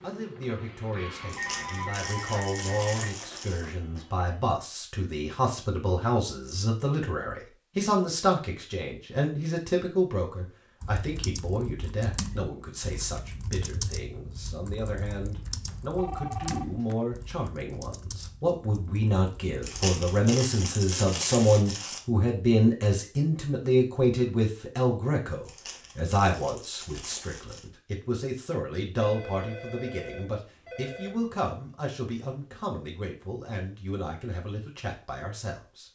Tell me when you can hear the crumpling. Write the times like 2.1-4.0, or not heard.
1.2-3.7, 19.6-22.0, 25.4-27.7.